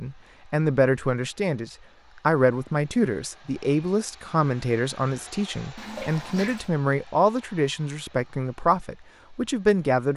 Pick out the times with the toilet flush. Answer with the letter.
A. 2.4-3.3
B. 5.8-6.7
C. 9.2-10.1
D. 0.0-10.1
B.